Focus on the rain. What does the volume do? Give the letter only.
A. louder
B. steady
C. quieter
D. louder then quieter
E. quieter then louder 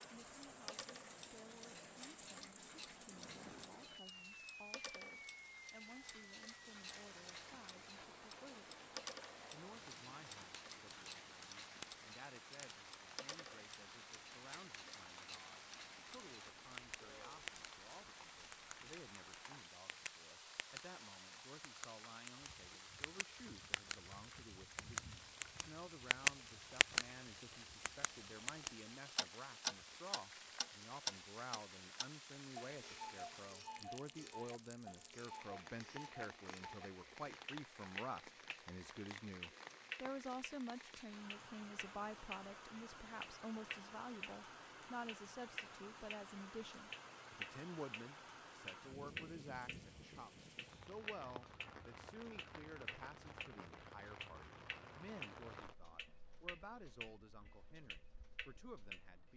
B.